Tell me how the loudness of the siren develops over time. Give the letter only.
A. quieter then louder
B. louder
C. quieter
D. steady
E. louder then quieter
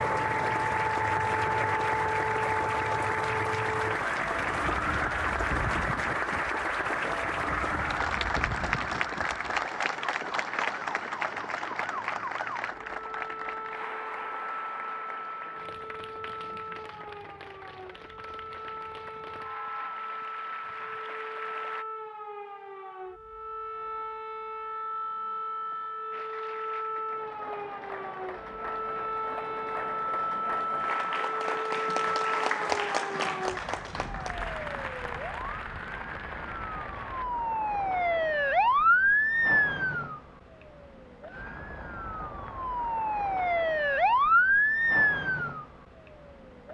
A.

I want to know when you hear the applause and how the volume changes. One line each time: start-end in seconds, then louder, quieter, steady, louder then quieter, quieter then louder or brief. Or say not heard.
0.0-21.9 quieter
26.1-37.2 louder then quieter.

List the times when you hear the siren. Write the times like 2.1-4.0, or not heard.
0.0-46.6.